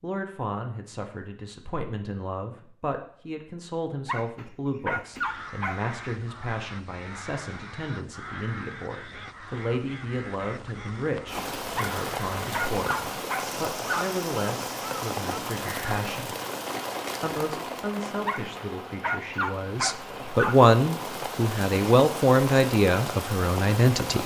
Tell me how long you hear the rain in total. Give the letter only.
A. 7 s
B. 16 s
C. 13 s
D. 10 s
C.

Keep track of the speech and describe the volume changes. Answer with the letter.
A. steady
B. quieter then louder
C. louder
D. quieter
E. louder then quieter
C.